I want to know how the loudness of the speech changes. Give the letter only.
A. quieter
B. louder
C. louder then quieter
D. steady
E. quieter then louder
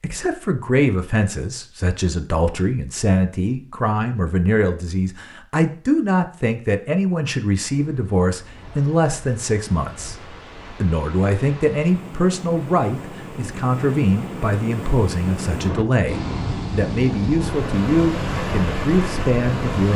D.